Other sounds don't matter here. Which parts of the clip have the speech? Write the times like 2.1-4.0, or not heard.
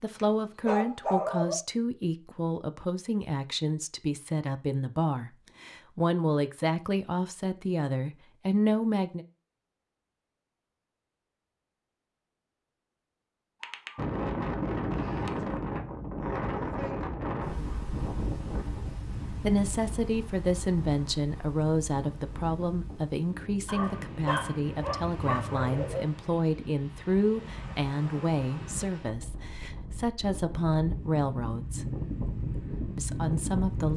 0.0-9.2, 19.4-31.9, 33.0-33.9.